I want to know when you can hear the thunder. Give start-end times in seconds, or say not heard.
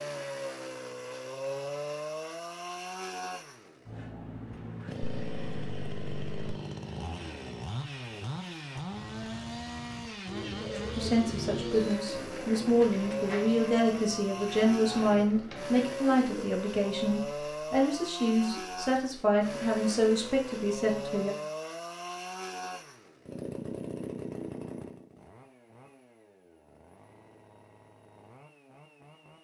not heard.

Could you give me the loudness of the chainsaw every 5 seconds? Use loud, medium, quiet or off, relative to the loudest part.
loud, loud, loud, loud, loud, quiet.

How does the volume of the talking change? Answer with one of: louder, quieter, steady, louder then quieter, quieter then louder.
steady.